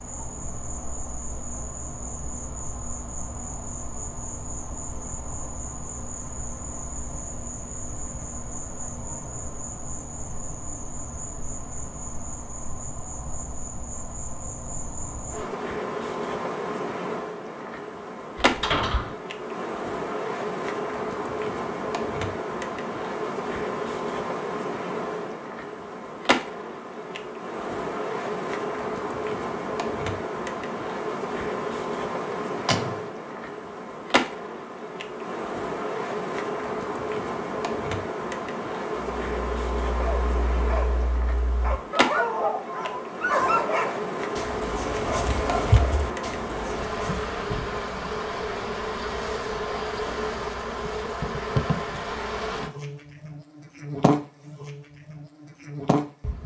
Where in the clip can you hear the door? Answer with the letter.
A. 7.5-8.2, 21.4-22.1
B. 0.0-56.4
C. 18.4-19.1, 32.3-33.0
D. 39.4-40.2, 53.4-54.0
C.